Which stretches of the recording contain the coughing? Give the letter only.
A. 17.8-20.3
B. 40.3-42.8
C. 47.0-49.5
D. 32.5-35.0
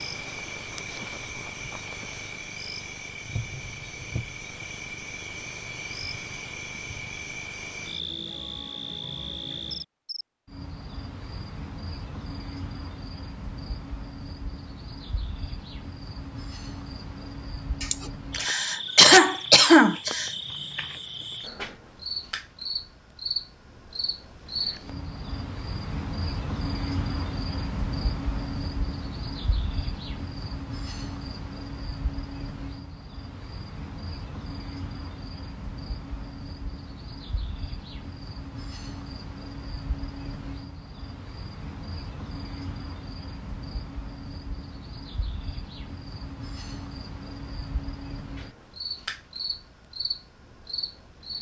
A.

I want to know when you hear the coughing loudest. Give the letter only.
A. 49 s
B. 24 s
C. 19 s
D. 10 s
C.